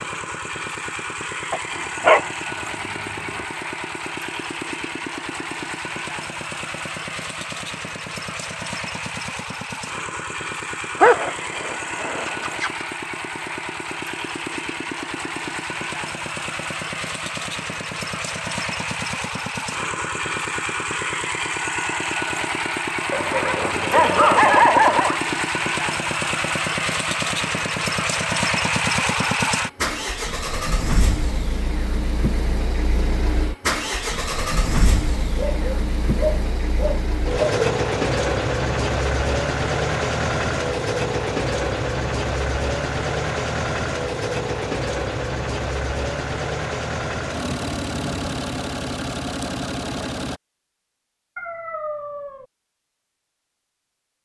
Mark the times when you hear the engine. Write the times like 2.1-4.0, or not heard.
0.0-50.4.